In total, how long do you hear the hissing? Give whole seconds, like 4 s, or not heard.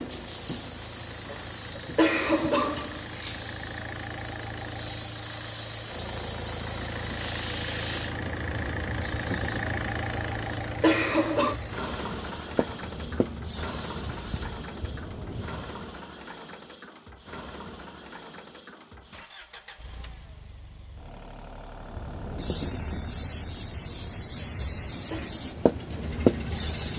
21 s.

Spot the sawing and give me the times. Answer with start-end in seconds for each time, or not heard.
not heard.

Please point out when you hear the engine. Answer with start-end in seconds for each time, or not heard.
0.0-26.9.